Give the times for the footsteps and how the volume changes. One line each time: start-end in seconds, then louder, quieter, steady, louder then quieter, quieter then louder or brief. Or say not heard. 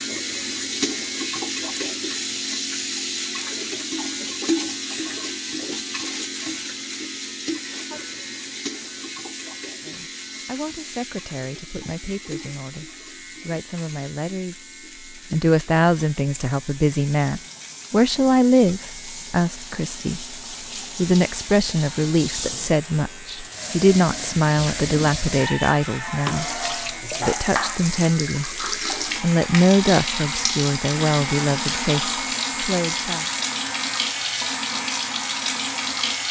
not heard.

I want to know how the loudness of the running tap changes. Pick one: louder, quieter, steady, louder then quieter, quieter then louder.
quieter then louder.